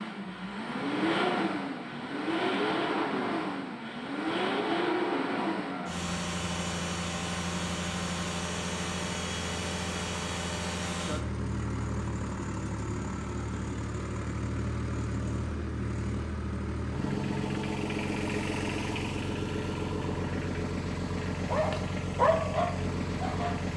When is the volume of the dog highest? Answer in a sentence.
The volume of the dog peaks at 22 seconds.